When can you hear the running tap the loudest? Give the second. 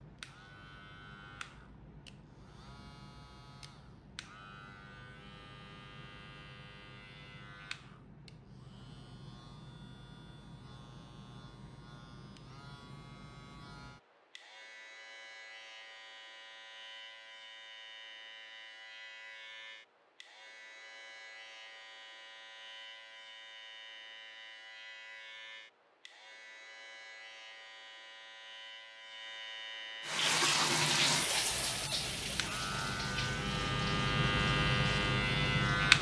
31 s.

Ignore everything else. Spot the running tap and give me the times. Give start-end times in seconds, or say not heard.
30.1-35.9.